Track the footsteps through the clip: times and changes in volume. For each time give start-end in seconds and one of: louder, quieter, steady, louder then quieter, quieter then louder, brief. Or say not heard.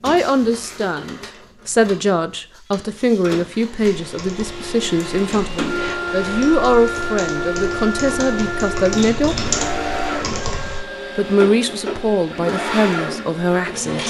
not heard.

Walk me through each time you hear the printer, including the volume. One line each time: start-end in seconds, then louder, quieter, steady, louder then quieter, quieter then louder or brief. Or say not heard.
0.0-14.0 louder.